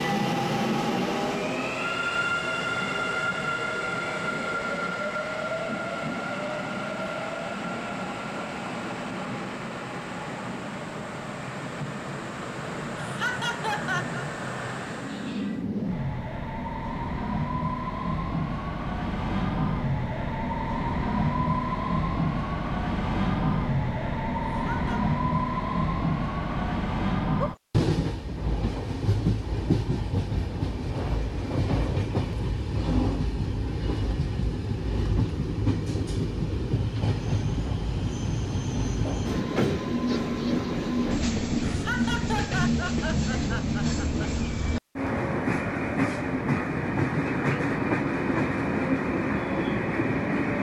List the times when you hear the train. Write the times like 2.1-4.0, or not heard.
0.0-50.5.